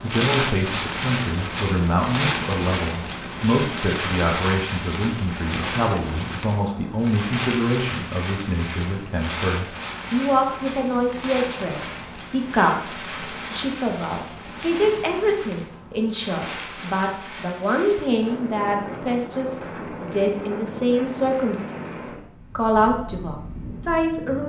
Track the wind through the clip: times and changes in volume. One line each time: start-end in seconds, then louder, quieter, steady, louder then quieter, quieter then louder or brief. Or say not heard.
0.0-24.4 quieter.